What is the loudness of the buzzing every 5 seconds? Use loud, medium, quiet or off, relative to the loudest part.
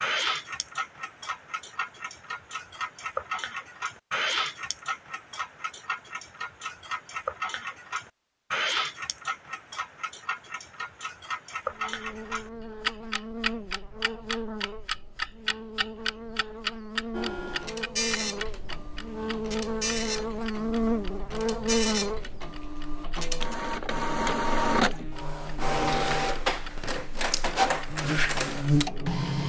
off, off, medium, medium, loud, loud.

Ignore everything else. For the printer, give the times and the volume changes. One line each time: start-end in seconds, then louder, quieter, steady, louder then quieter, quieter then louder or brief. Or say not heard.
17.1-29.4 louder.